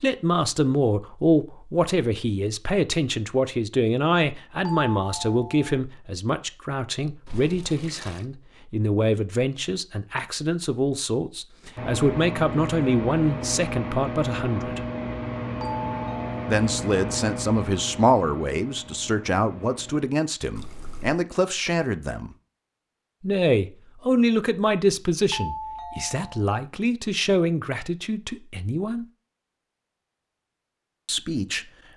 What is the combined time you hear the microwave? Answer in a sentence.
The microwave can be heard for 8 seconds in total.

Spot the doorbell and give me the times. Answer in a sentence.
The doorbell can be heard from 4.7 to 5.8 s, from 15.6 to 16.4 s and from 25.3 to 26.4 s.